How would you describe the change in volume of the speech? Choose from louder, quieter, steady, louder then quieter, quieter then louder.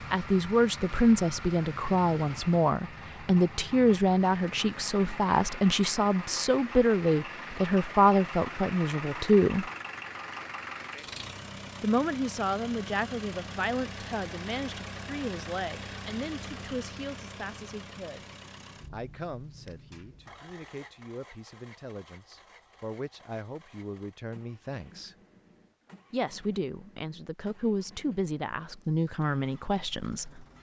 quieter then louder.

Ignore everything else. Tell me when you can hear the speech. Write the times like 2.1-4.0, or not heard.
0.1-9.7, 11.8-18.2, 18.9-25.1, 26.1-30.4.